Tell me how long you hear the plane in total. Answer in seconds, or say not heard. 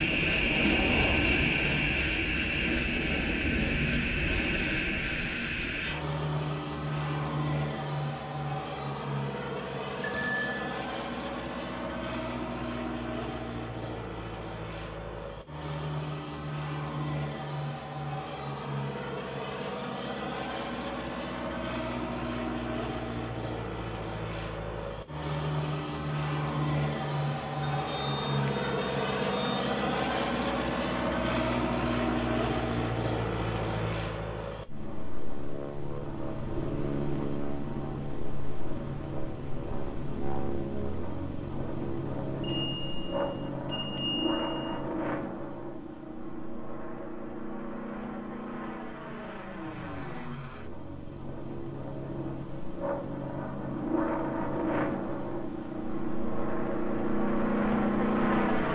59 s.